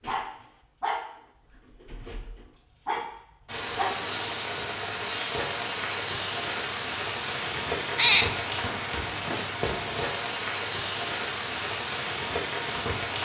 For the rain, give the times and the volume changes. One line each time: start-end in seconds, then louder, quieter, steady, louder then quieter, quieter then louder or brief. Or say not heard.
3.5-13.1 steady.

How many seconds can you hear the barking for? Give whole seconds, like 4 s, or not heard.
4 s.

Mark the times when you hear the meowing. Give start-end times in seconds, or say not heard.
7.5-8.4.